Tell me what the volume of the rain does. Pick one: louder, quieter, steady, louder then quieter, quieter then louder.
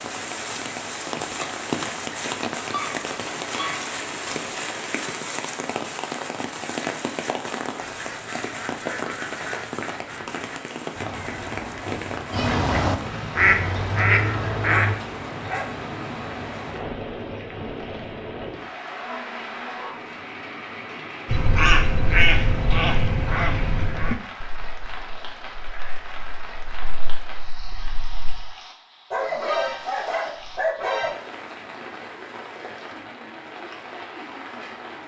quieter.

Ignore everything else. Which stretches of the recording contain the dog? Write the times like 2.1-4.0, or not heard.
2.7-3.9, 14.7-15.8, 19.0-20.1, 29.1-31.1.